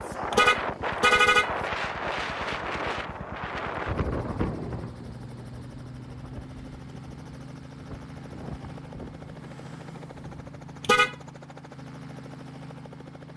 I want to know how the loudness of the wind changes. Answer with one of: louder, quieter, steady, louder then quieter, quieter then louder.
quieter.